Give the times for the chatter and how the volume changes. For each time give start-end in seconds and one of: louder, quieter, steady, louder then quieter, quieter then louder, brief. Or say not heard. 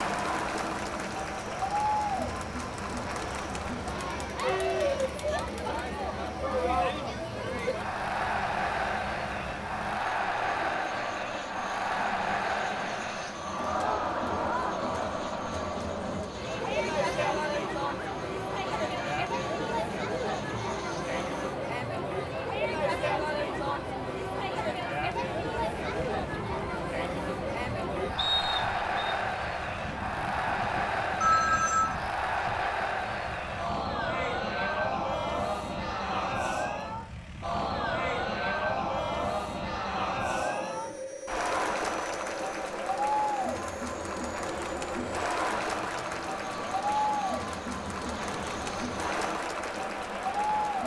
0.0-50.8 steady.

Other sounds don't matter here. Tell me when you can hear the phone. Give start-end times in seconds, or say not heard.
30.6-31.9.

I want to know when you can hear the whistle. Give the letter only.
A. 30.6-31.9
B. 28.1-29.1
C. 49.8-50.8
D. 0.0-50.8
B.